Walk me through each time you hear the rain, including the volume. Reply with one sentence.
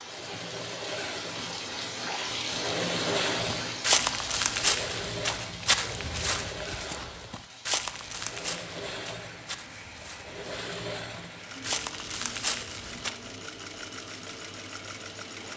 You can hear the rain from 0.0 to 15.5 s, getting quieter.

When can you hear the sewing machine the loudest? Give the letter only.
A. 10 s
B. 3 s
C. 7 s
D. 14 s
B.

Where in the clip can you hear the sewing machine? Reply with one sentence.
The sewing machine can be heard from 0.0 to 15.5 s.